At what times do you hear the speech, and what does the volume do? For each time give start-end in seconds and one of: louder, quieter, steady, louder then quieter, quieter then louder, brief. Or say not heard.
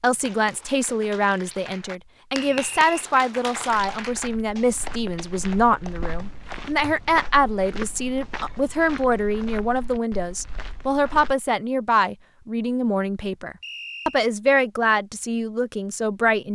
0.0-16.5 steady.